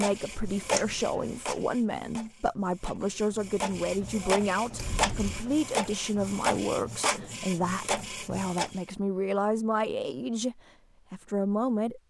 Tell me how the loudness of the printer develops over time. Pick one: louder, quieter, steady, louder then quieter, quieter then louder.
quieter then louder.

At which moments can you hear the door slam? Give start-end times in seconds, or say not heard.
not heard.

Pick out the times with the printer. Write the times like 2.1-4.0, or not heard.
0.0-8.8.